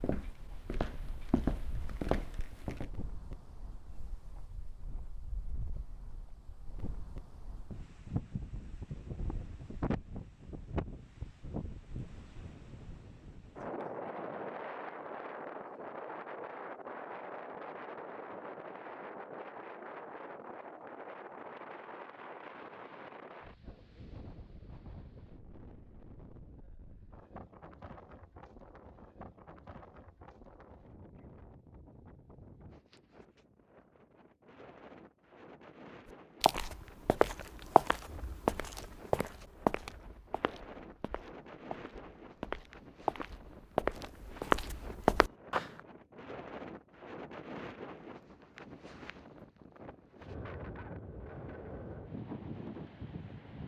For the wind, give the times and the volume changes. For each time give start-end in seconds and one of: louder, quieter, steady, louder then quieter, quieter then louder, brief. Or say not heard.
0.0-53.6 quieter then louder.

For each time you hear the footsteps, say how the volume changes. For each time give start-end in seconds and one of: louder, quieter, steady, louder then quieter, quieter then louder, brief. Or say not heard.
0.0-2.9 brief
36.4-45.8 quieter then louder.